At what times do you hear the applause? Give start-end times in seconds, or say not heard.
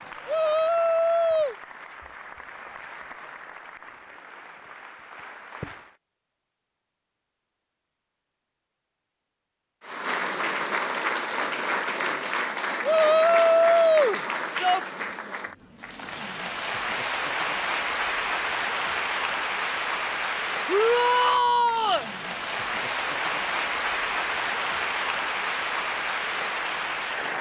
0.0-6.0, 9.8-27.3.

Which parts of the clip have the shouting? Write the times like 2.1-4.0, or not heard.
0.2-1.6, 12.8-14.8, 20.6-22.1.